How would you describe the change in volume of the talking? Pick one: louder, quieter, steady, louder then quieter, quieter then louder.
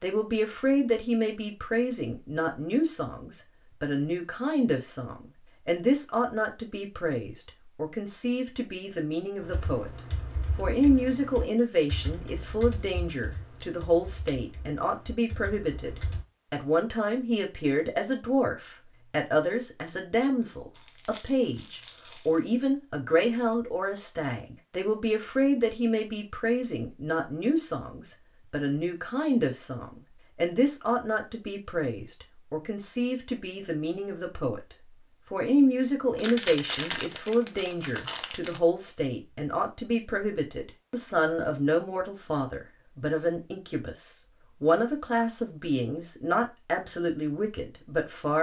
steady.